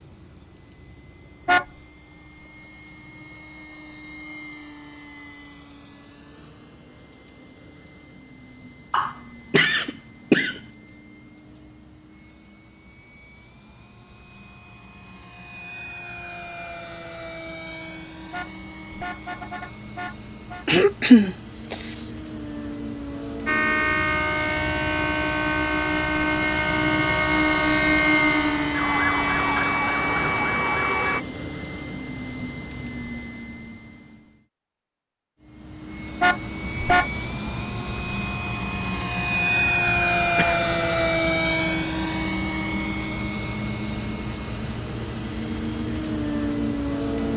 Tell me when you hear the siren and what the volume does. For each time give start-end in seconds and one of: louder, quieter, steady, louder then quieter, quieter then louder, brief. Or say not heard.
23.4-31.2 steady.